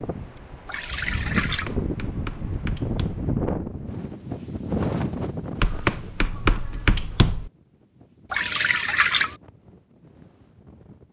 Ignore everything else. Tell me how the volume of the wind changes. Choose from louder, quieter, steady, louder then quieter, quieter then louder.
quieter.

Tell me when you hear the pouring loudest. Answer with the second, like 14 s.
9 s.